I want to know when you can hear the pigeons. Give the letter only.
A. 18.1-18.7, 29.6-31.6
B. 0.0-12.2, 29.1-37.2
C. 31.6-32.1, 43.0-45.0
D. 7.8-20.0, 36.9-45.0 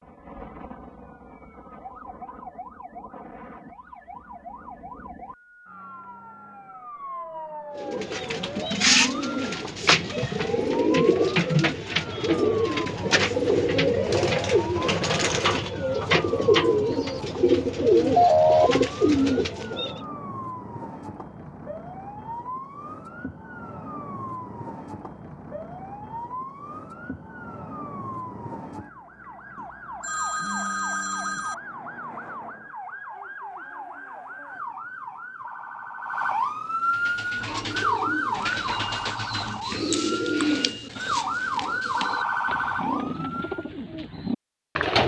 D.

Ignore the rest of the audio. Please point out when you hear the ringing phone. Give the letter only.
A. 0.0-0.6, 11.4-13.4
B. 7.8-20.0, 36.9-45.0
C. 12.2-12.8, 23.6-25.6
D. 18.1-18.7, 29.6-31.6
D.